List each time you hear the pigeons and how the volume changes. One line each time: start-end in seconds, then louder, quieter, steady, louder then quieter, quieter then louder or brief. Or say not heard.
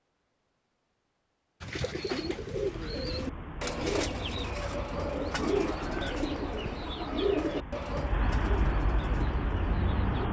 1.6-10.2 quieter.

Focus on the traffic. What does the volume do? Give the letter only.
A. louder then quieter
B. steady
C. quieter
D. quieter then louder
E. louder
E.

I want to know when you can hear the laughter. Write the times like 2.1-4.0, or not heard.
not heard.